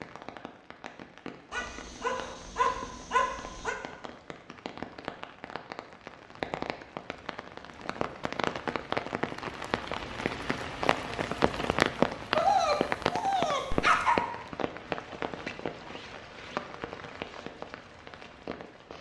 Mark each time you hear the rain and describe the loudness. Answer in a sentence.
You can hear the rain from 0.0 to 18.9 s, getting louder then quieter.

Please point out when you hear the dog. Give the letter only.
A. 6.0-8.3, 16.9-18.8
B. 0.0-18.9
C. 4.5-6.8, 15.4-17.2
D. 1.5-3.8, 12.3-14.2
D.